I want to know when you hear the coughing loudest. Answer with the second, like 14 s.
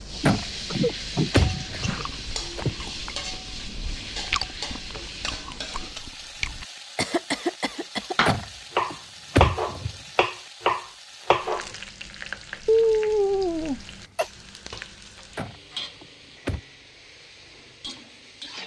13 s.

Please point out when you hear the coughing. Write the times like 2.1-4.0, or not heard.
0.1-2.0, 7.0-8.3, 12.7-14.3.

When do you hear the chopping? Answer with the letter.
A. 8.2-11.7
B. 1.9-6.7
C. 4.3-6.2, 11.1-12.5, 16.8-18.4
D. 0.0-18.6
A.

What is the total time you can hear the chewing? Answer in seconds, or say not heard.
5 s.